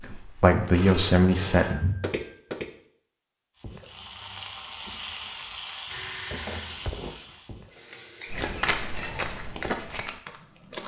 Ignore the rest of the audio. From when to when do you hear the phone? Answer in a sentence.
You can hear the phone from 0.7 to 2.4 s and from 5.8 to 6.8 s.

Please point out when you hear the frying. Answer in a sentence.
The frying can be heard from 3.6 to 9.3 s.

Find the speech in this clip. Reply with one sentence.
You can hear the speech from 0.0 to 1.8 s.